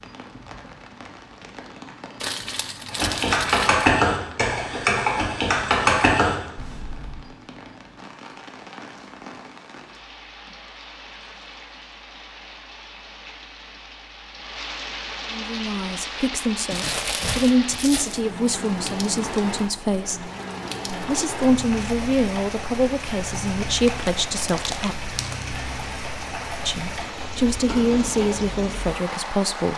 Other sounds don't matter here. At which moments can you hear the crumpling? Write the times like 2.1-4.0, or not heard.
2.2-3.9, 16.7-18.2, 23.8-25.4.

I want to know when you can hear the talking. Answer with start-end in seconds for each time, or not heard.
15.3-20.3, 21.1-25.1, 26.6-29.7.